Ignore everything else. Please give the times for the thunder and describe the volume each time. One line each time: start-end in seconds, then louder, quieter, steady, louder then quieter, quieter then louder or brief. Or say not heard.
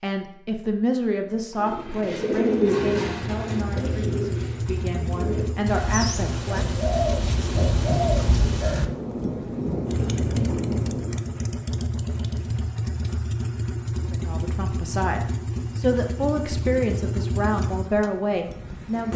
6.8-11.2 louder.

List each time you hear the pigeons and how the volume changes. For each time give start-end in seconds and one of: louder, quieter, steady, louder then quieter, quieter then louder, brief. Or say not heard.
1.6-8.9 quieter then louder.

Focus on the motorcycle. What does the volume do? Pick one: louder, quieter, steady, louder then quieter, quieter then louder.
steady.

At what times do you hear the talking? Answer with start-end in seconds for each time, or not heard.
0.0-6.7, 14.1-19.1.